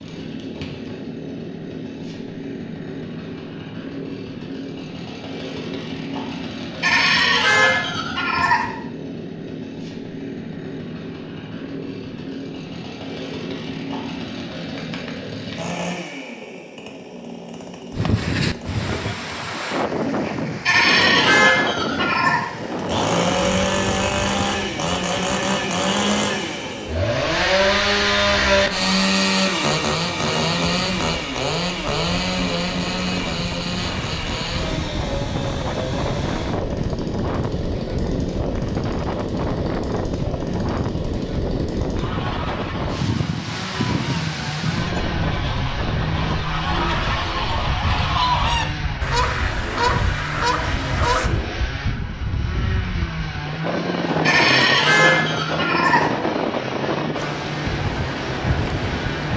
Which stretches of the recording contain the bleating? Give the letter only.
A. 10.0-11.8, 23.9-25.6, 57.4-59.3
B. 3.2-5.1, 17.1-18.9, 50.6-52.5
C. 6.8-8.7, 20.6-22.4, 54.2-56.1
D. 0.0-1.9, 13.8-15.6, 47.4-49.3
C.